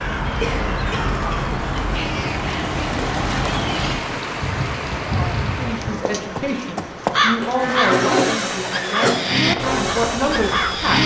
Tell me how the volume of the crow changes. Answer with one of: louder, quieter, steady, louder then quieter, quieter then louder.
louder.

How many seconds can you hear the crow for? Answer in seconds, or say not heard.
11 s.